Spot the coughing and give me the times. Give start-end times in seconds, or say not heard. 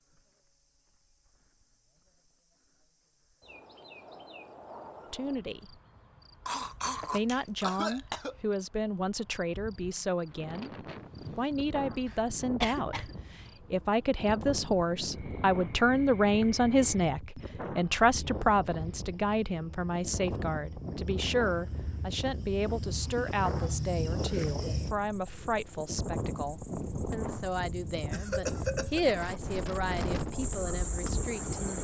6.5-8.3, 12.1-13.2, 28.1-29.1.